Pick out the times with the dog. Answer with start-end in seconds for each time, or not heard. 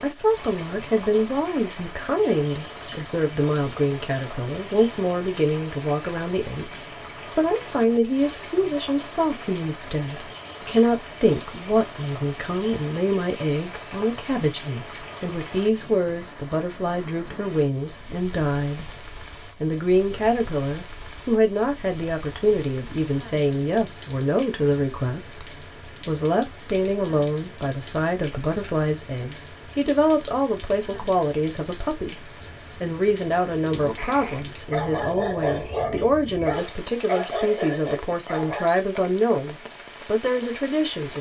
33.6-38.7.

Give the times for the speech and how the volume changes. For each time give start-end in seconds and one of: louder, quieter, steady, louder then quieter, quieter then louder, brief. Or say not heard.
0.0-41.1 steady.